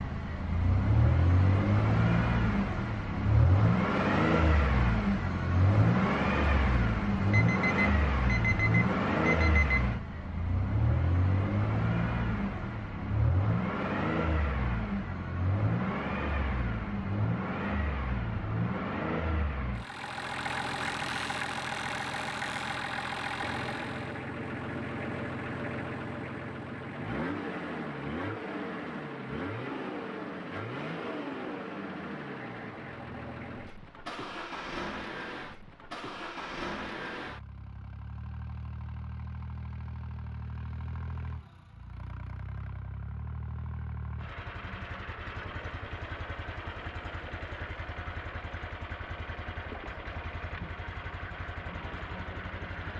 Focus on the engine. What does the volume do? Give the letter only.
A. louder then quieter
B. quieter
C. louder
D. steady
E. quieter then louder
B.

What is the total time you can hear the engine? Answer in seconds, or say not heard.
53 s.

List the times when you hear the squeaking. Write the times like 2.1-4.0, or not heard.
20.8-22.8.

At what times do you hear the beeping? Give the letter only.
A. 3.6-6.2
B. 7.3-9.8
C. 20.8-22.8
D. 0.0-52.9
B.